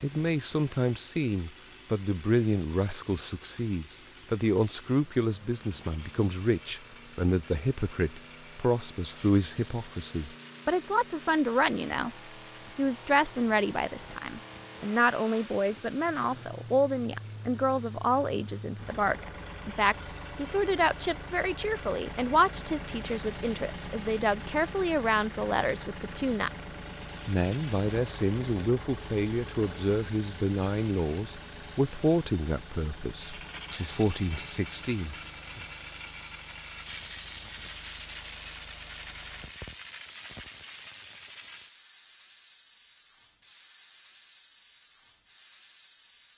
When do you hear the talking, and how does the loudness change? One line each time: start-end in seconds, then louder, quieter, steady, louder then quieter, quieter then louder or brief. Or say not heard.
0.0-12.1 steady
12.8-35.6 steady.